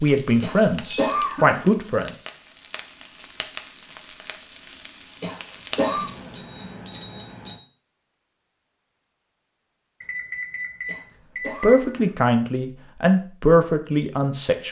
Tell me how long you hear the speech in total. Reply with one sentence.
You can hear the speech for 5 seconds altogether.